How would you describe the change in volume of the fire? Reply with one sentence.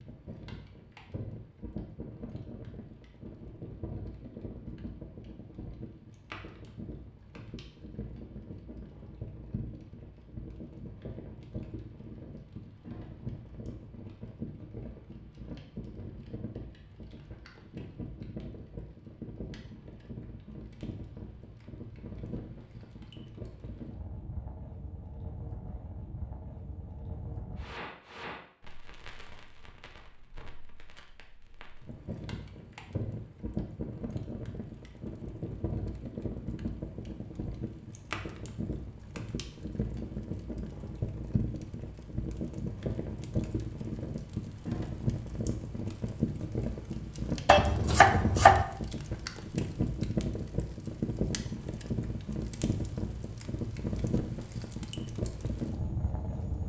The volume of the fire goes up.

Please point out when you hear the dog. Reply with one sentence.
The dog can't be heard in this clip.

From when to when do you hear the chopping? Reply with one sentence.
You can hear the chopping from 47.5 to 48.6 s.